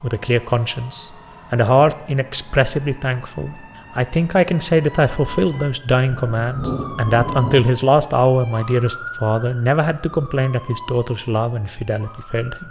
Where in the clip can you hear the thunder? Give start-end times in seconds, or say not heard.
6.0-7.7.